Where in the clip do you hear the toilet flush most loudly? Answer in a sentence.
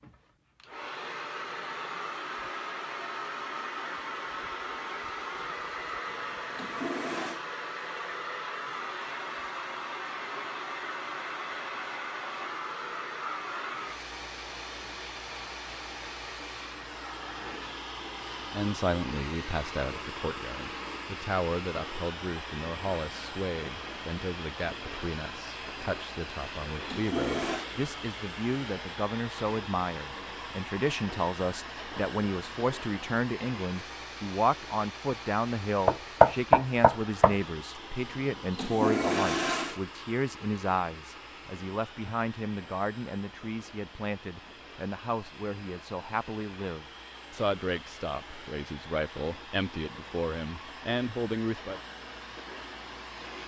The loudest moment of the toilet flush is at 39 seconds.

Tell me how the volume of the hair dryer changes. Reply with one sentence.
The volume of the hair dryer goes down.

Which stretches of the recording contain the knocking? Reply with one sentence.
You can hear the knocking from 35.9 to 37.4 s.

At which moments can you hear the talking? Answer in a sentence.
The talking can be heard from 18.5 to 51.8 s.